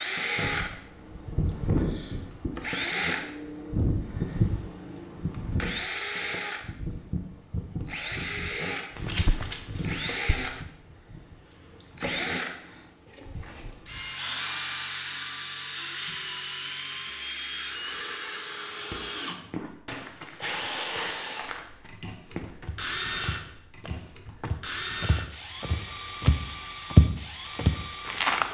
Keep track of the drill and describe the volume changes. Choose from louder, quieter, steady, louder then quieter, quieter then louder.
quieter.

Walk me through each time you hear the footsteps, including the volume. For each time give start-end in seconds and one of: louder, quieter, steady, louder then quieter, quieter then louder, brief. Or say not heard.
8.9-10.7 brief
18.9-28.4 louder.